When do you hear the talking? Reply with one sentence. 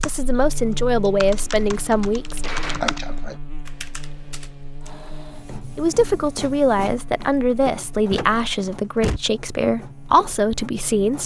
You can hear the talking from 0.0 to 2.5 s and from 5.8 to 11.2 s.